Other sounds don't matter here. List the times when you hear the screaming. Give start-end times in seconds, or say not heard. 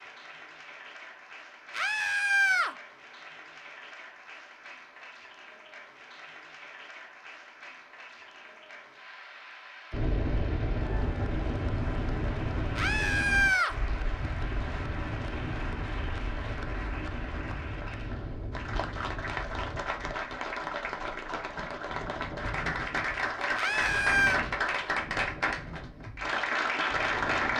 1.7-2.7, 12.8-13.8, 23.6-24.4.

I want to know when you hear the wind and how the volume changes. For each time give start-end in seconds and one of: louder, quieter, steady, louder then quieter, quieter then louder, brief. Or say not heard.
9.9-27.5 quieter.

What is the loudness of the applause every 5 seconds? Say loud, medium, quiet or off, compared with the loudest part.
quiet, quiet, quiet, medium, loud, loud.